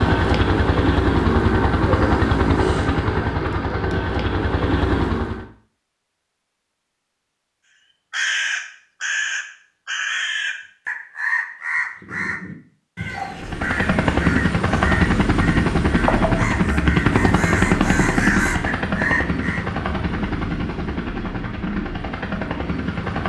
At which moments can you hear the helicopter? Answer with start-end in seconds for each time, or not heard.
0.0-5.5, 13.3-23.2.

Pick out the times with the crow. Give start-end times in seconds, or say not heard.
8.1-19.6.